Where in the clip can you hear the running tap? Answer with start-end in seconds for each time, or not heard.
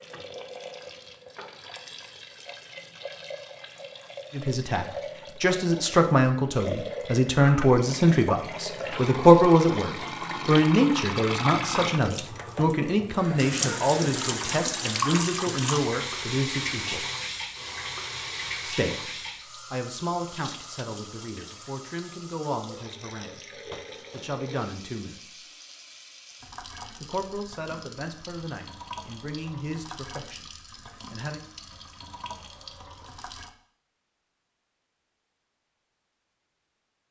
0.0-33.5.